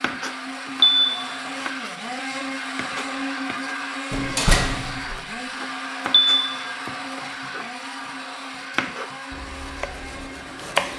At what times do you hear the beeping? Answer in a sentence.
You can hear the beeping from 0.8 to 1.7 s and from 6.1 to 6.6 s.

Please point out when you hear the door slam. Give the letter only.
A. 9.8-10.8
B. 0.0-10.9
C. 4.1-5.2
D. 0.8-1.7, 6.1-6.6
C.